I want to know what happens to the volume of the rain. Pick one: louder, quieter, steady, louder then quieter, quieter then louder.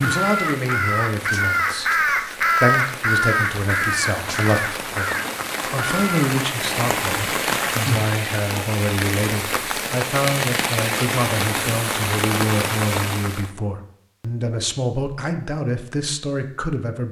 louder.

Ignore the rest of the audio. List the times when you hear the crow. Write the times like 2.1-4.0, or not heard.
0.0-6.3.